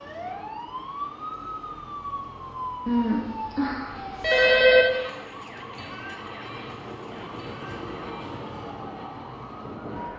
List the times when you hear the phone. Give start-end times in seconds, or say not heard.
2.9-4.8.